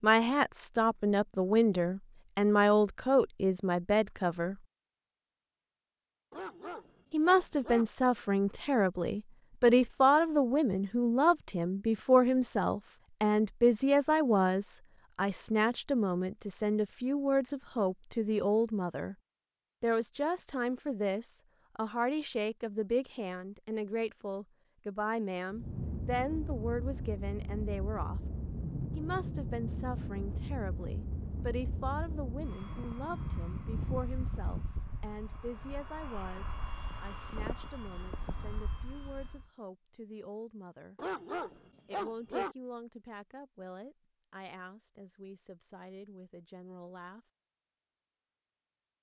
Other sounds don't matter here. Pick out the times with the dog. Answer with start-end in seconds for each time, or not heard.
6.3-7.8, 41.0-42.5.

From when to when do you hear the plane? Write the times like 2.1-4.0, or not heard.
25.5-39.5.